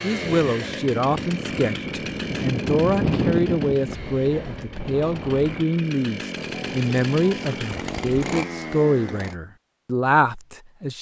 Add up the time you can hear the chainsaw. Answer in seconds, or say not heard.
9 s.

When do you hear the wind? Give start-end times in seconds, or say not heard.
0.0-5.7.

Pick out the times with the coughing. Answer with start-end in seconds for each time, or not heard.
not heard.